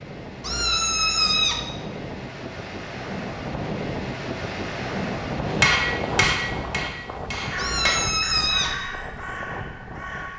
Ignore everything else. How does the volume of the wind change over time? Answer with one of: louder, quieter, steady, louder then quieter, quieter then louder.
louder then quieter.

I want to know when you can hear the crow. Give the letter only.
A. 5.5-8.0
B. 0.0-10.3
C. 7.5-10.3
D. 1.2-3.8
C.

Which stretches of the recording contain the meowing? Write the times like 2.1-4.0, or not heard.
0.4-1.6, 7.5-8.8.